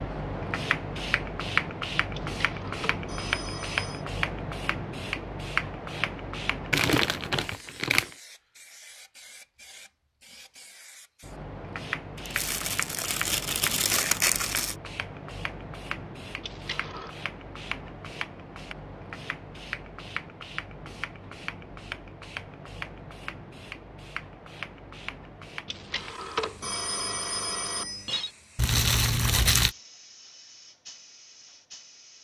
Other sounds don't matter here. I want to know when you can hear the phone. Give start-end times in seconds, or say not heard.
2.1-4.0, 16.4-17.1, 25.6-28.3.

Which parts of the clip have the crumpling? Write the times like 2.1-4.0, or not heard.
6.7-8.2, 12.2-14.8, 28.6-29.8.